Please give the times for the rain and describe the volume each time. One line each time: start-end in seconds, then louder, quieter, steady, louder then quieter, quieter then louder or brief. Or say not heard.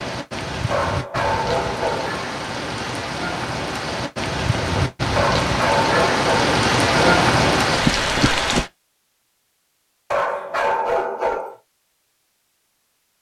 0.0-8.7 louder.